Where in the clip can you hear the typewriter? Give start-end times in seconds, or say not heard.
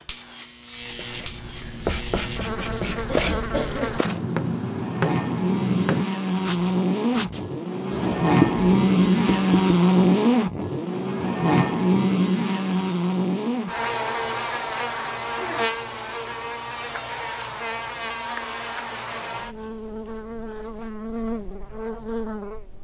not heard.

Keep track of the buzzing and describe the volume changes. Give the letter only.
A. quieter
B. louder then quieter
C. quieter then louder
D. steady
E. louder
B.